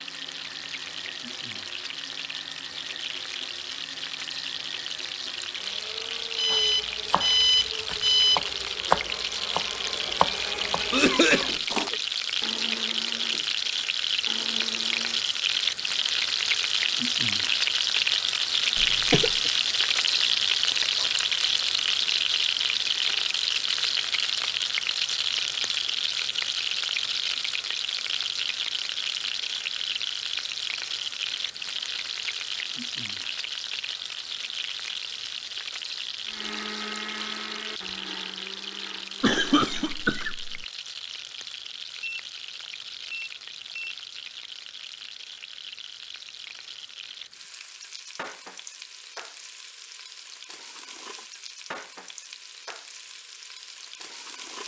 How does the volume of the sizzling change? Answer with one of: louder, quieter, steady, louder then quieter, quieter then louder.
louder then quieter.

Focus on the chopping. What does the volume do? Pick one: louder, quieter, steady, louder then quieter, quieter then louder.
louder then quieter.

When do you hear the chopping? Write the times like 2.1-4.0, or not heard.
6.5-11.9.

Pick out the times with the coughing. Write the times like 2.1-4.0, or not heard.
10.9-11.9, 18.8-19.5, 39.2-40.6.